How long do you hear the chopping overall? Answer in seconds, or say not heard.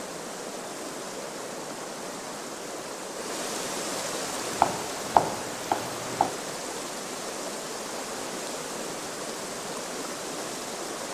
2 s.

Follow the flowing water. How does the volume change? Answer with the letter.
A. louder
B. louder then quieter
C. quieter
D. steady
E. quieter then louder
D.